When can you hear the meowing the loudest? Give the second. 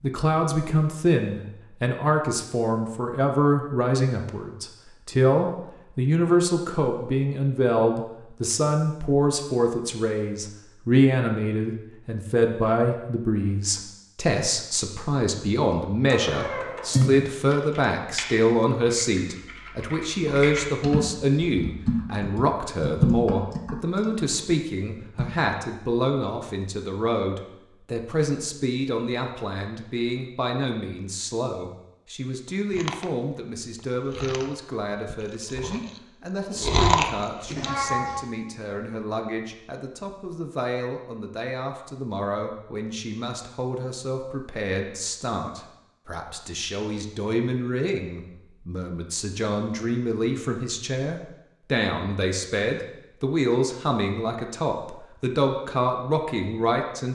17 s.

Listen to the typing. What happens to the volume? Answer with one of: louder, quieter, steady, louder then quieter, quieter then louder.
louder then quieter.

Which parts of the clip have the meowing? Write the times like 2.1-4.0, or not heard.
16.1-17.1, 37.5-38.2.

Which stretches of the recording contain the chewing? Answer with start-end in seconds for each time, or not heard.
32.7-37.9.